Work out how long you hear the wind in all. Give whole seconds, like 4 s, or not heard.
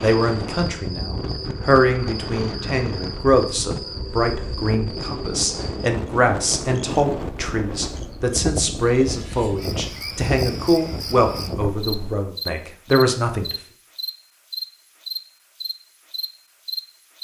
12 s.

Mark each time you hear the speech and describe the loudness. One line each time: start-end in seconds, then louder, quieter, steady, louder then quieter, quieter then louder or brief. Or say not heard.
0.0-13.6 steady.